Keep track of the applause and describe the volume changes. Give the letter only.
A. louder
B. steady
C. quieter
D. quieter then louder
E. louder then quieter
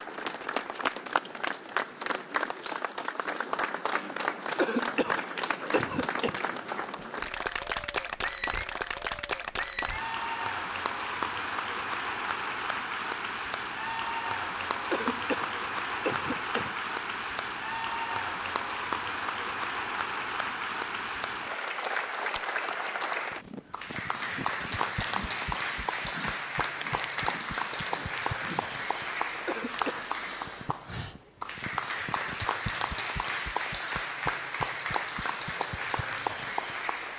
B.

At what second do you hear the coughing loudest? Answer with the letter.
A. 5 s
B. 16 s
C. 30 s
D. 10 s
A.